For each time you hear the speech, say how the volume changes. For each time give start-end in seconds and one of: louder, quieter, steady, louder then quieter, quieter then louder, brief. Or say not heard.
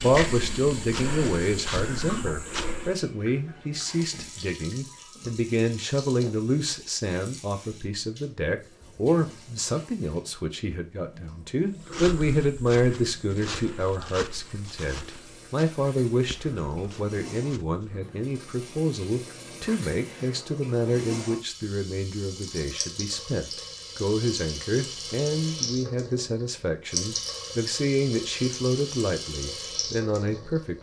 0.0-30.7 steady.